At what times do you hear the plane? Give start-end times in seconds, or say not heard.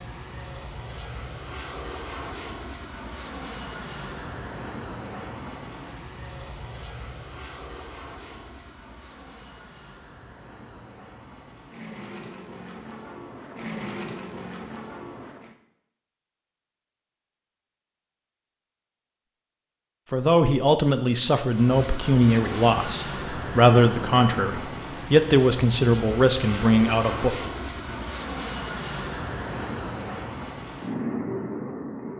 0.0-15.6, 21.5-32.1.